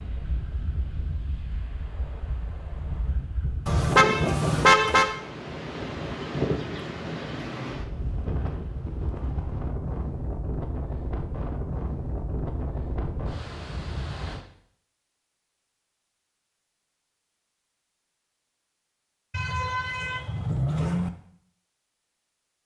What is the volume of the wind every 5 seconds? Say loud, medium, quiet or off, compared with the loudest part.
loud, loud, loud, off, off.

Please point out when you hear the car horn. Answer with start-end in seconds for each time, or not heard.
3.6-5.2, 19.3-21.1.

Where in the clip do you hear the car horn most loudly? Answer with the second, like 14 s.
5 s.